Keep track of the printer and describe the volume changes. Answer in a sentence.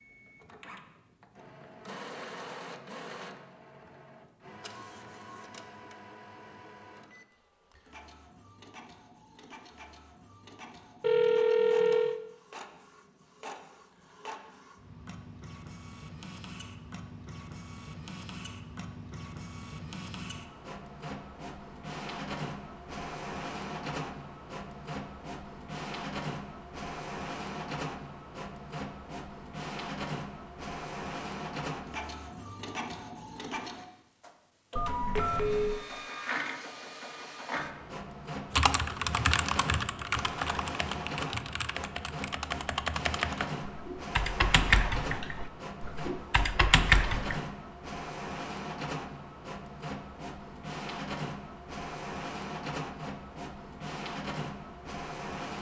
The loudness of the printer goes up.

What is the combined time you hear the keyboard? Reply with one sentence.
The keyboard can be heard for 9 seconds in total.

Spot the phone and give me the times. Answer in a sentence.
The phone can be heard from 11.0 to 12.2 s and from 34.8 to 35.8 s.